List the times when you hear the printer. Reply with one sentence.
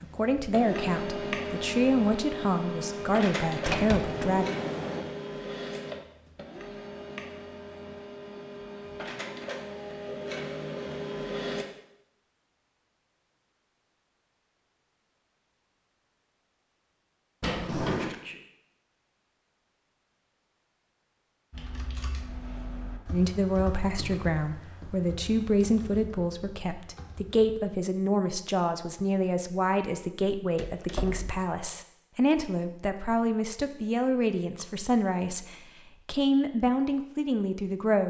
You can hear the printer from 0.0 to 11.7 s.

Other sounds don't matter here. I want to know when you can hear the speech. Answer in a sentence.
You can hear the speech from 0.0 to 4.5 s and from 23.1 to 38.0 s.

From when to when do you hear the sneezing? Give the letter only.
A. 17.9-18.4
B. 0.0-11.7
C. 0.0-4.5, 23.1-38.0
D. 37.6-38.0
A.